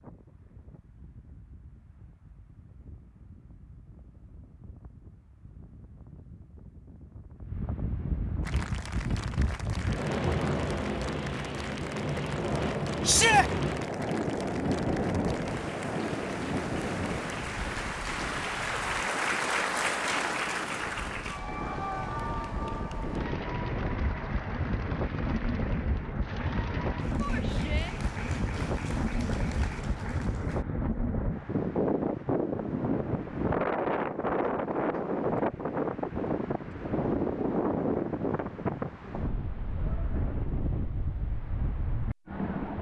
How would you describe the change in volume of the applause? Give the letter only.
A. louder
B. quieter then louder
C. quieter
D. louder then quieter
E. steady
D.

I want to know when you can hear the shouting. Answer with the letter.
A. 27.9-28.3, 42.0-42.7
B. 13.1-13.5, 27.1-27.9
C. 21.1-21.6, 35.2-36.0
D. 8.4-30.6
B.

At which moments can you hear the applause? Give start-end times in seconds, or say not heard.
8.4-30.6.